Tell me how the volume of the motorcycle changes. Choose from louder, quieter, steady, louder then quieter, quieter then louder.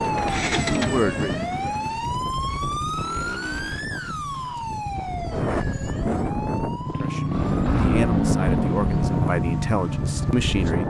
quieter then louder.